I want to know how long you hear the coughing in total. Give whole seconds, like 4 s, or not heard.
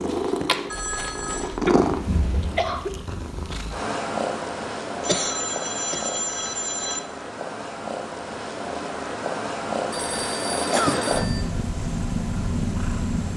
3 s.